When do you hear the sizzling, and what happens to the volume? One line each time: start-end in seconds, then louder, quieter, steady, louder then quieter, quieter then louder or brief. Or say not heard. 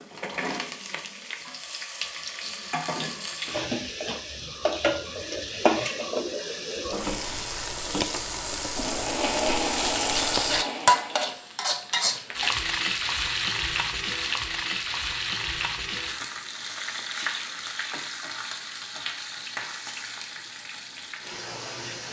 0.0-22.0 louder then quieter.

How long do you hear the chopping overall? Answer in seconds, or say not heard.
not heard.